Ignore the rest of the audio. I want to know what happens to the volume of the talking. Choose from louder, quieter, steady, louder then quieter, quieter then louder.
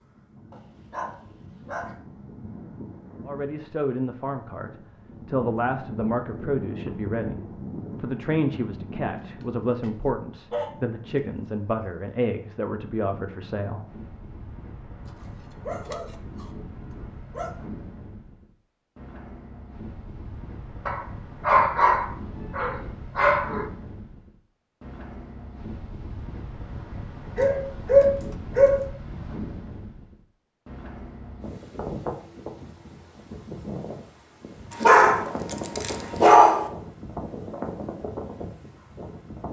steady.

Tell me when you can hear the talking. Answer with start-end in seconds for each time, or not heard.
3.2-13.8.